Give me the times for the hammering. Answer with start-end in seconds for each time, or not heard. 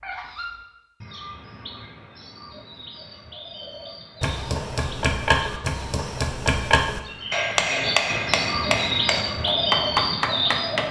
3.6-10.8.